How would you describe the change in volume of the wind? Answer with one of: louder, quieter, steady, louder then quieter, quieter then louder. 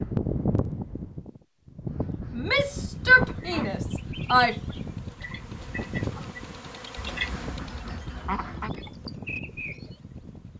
quieter.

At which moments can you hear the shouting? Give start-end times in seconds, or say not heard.
2.3-4.5.